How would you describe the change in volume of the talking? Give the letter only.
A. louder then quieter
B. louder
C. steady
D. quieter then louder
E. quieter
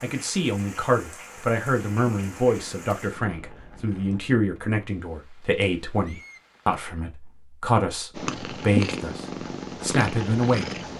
C.